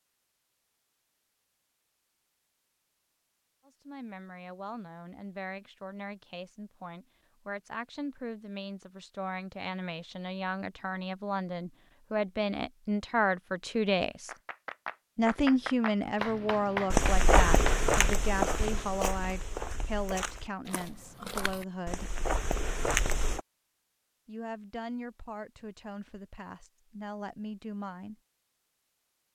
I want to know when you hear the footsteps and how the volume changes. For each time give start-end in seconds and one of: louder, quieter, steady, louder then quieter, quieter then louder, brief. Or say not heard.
16.9-23.4 quieter then louder.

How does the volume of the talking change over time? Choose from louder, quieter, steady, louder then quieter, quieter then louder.
louder then quieter.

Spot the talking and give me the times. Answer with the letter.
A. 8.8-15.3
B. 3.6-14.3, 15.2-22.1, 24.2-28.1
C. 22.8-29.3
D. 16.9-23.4
B.